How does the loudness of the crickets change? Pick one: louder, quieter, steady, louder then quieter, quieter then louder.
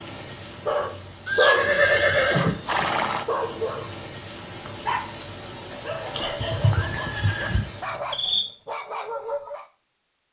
louder.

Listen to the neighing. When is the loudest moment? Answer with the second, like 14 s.
2 s.